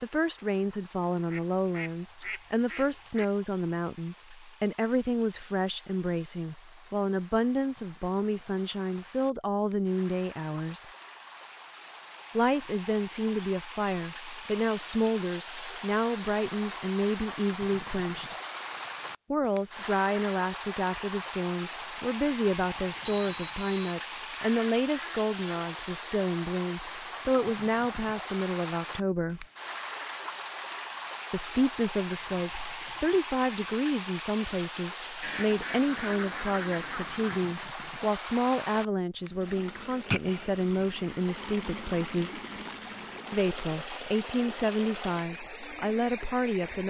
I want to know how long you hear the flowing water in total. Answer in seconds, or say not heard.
47 s.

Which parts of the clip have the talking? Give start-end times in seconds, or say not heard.
0.0-10.8, 12.3-18.4, 19.3-29.4, 31.3-42.4, 43.3-46.8.